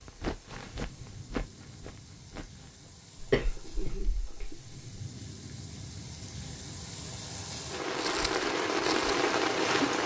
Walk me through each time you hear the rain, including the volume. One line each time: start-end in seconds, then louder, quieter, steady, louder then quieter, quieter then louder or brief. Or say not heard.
0.0-10.0 louder.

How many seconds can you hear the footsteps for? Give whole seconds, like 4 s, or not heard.
5 s.